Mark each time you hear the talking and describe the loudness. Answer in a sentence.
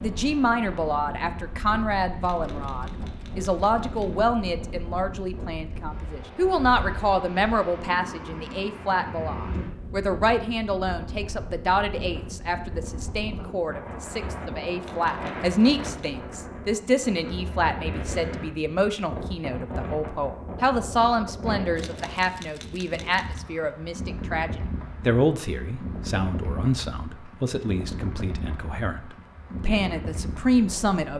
The talking can be heard from 0.0 to 31.1 s, at a steady volume.